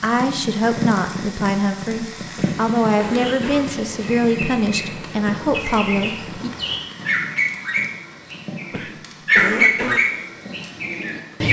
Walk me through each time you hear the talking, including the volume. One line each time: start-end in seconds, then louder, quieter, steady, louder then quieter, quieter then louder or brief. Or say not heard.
0.0-6.5 steady.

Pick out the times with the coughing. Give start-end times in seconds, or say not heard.
2.4-3.6, 8.7-10.0.